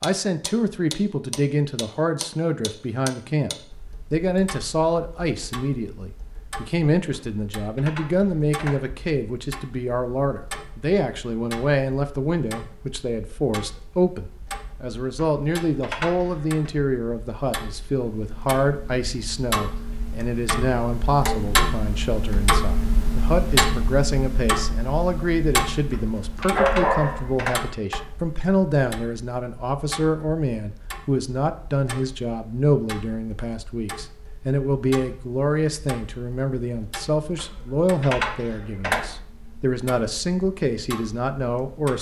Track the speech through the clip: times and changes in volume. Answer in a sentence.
The speech can be heard from 0.0 to 41.9 s, at a steady volume.